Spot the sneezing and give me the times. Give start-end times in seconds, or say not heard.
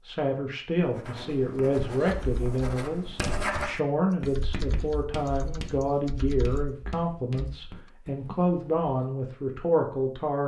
not heard.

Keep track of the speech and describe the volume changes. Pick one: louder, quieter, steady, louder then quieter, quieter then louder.
steady.